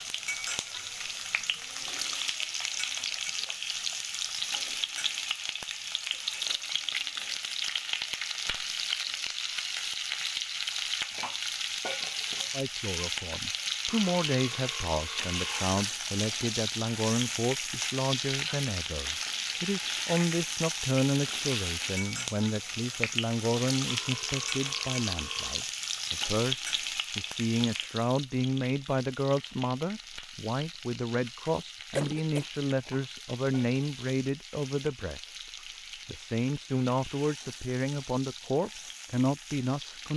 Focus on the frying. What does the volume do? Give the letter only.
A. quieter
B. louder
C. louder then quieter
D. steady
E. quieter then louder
A.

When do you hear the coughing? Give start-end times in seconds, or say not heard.
31.9-32.5.